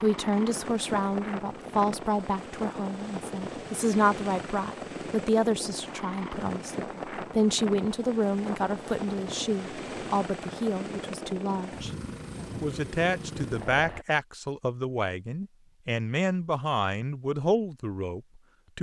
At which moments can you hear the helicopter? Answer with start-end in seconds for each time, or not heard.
0.0-14.1.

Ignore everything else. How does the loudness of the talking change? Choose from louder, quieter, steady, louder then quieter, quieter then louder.
steady.